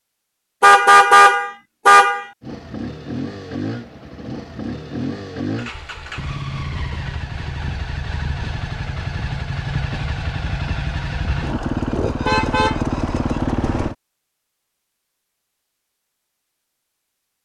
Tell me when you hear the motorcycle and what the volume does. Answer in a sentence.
You can hear the motorcycle from 2.4 to 13.9 s, getting louder.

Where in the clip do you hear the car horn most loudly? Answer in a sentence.
The loudest moment of the car horn is at 1 second.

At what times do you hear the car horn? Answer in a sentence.
You can hear the car horn from 0.6 to 2.2 s and from 12.2 to 12.9 s.